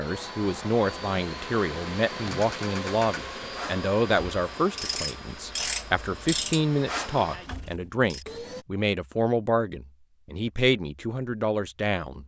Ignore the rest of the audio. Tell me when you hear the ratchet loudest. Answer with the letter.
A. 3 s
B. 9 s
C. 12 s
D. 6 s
D.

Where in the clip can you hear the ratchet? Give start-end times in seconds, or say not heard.
2.3-8.2.